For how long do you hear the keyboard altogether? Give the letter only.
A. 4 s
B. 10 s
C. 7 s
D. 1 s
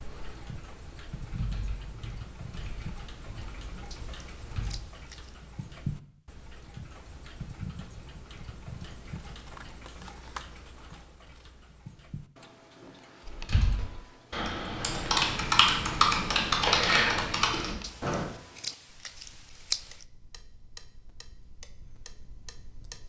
B.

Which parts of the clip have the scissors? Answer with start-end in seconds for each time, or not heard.
3.9-5.3, 9.2-11.5, 17.8-20.1.